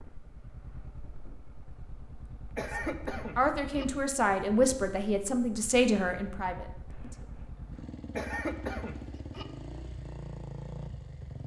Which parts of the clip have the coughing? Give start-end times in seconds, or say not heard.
2.5-3.9, 8.2-9.4.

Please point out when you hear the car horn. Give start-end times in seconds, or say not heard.
not heard.